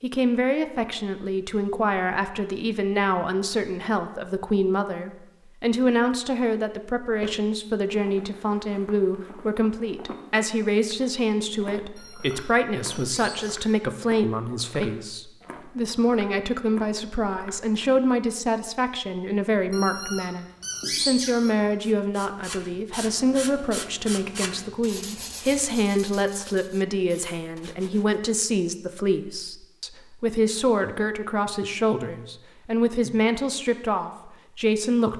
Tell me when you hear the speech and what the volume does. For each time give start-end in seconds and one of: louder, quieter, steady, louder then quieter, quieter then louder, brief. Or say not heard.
0.0-35.1 steady.